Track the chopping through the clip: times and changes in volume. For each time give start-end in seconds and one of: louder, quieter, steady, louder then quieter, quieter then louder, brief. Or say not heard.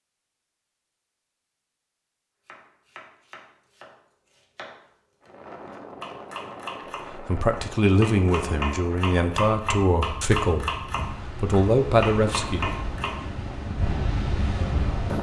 2.5-13.2 louder.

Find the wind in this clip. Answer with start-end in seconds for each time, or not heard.
5.2-15.1.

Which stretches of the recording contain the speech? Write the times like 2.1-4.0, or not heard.
7.1-12.7.